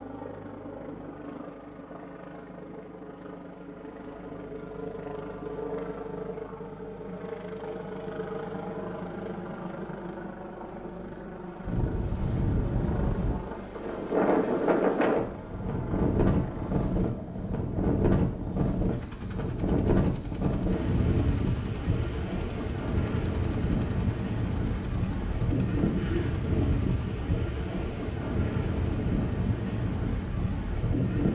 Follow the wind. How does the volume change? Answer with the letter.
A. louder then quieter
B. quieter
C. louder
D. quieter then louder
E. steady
E.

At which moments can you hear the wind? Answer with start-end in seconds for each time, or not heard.
11.6-31.3.